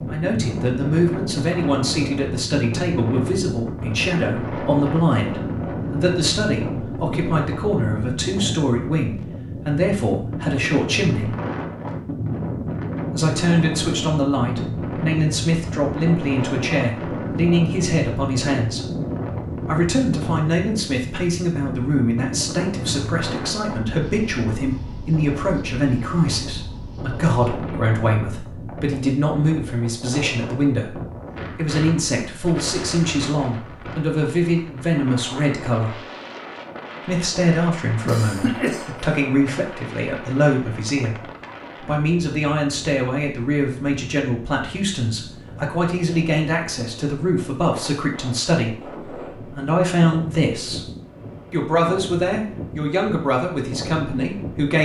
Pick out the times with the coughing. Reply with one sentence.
You can hear the coughing from 38.0 to 39.1 s.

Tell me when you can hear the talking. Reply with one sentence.
The talking can be heard from 0.1 to 11.3 s, from 13.1 to 18.9 s, from 19.6 to 36.0 s, from 37.0 to 50.9 s and from 51.5 to 54.8 s.